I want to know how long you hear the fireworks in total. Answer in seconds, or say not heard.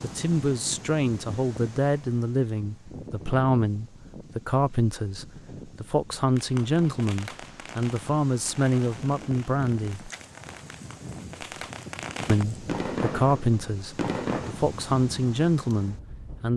8 s.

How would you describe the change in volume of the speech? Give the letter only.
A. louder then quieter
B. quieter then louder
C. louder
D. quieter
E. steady
E.